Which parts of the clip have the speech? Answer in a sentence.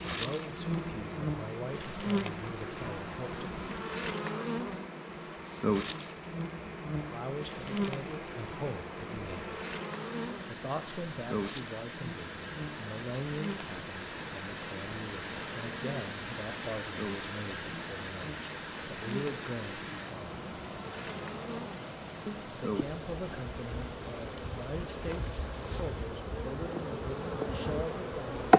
You can hear the speech from 0.0 to 3.5 s, from 7.1 to 9.5 s, from 10.4 to 20.4 s and from 22.2 to 28.5 s.